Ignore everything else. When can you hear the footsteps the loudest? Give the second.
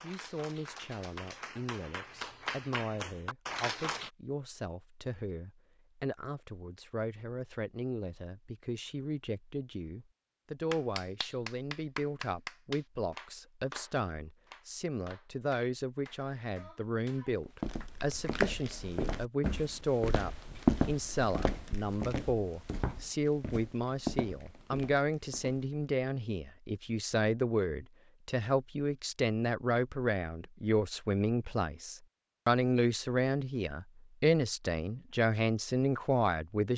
21 s.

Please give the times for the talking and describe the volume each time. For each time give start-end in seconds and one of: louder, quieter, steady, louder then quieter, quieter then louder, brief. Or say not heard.
0.0-36.7 louder.